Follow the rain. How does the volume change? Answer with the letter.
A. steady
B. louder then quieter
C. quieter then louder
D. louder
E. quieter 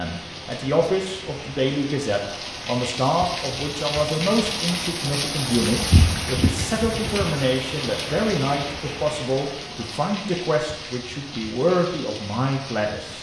B.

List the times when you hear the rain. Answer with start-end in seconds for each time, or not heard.
0.0-13.1.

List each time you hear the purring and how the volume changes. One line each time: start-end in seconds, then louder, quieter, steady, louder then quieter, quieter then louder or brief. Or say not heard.
not heard.